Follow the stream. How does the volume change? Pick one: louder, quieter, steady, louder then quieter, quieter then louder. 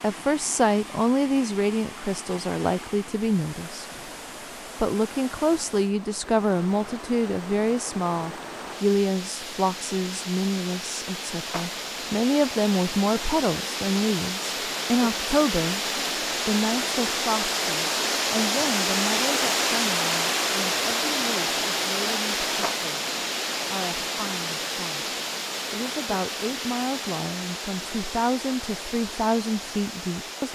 louder then quieter.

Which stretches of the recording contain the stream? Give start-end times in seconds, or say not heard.
0.0-30.5.